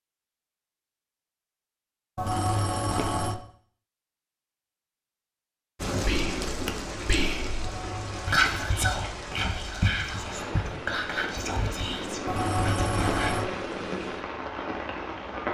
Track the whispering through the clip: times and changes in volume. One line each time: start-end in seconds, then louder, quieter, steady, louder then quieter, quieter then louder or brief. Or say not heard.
6.0-13.3 louder then quieter.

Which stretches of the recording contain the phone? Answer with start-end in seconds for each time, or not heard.
2.1-3.4, 7.6-8.8, 12.2-13.4.